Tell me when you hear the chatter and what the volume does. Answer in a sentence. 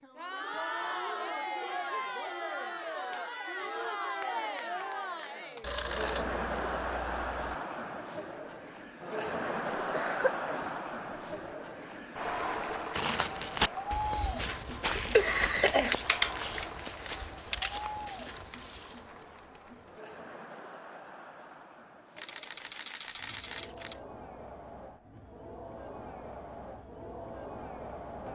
You can hear the chatter from 0.0 to 28.3 s, getting quieter.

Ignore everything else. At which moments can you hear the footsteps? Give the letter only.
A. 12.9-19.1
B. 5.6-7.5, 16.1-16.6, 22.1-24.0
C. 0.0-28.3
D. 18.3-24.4
A.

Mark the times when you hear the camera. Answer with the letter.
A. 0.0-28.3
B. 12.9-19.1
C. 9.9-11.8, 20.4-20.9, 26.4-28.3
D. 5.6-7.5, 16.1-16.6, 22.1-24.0
D.